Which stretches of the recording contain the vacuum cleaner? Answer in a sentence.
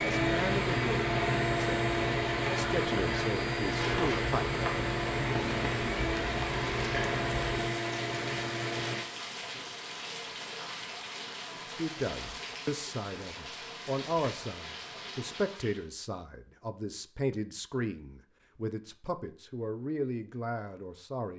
The vacuum cleaner can be heard from 0.0 to 9.1 s.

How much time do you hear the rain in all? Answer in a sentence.
You can hear the rain for 16 seconds altogether.